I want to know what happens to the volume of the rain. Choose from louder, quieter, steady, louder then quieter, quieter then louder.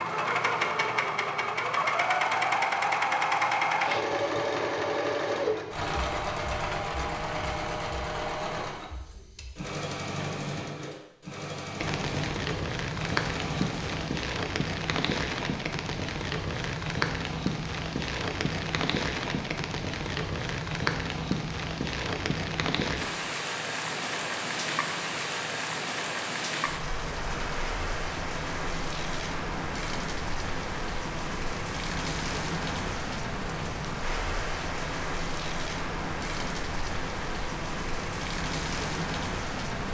steady.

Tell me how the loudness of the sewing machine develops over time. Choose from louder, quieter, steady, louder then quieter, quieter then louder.
quieter.